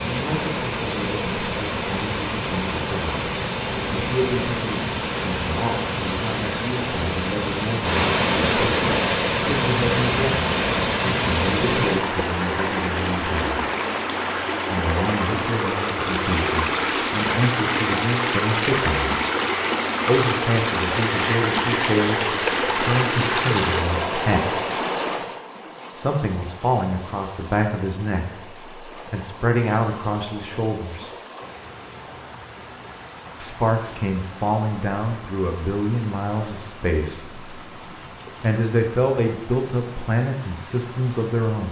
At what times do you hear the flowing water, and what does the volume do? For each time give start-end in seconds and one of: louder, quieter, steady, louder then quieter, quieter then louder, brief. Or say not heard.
0.0-41.6 quieter.